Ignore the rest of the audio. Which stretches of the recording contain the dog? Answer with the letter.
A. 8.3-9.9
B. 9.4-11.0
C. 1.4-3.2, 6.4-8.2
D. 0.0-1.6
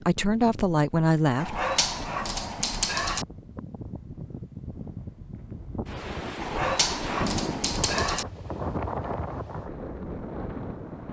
C.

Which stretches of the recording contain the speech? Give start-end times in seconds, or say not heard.
0.0-1.6.